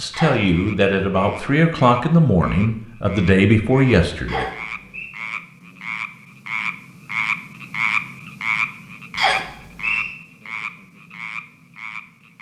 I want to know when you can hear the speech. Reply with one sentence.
The speech can be heard from 0.0 to 4.5 s.